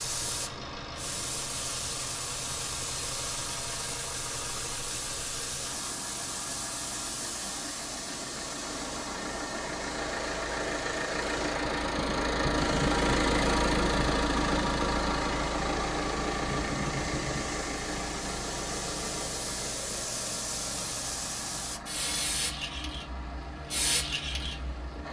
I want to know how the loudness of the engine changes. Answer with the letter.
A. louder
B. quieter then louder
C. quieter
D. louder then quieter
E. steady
D.